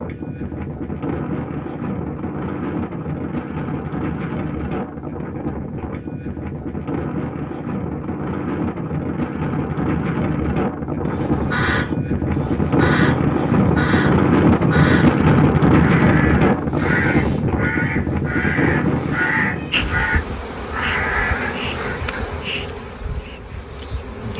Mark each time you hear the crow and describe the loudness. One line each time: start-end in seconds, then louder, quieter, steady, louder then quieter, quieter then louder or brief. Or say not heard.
11.1-22.0 steady.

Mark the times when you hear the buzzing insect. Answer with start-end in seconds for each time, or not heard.
19.7-24.3.